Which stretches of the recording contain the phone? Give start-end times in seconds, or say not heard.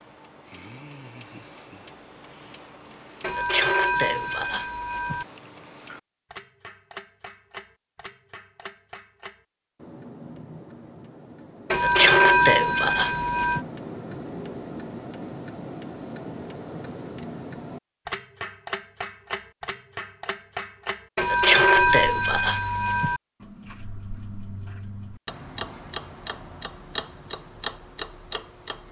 3.2-5.2, 11.7-13.6, 21.1-23.2.